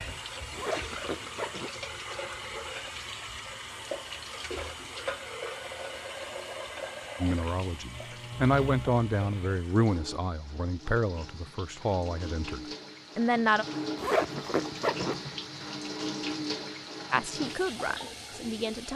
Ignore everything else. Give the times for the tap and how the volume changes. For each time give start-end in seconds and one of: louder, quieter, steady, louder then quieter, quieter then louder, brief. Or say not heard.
0.0-18.9 quieter then louder.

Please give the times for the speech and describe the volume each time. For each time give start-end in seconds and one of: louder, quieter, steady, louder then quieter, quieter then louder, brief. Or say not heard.
7.2-13.7 quieter
17.1-18.9 brief.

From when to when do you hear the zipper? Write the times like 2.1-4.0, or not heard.
0.5-1.7, 13.9-15.3.